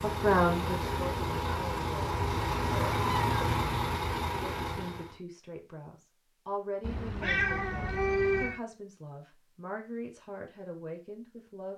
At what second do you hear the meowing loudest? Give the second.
8 s.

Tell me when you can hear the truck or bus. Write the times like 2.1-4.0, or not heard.
0.0-5.2.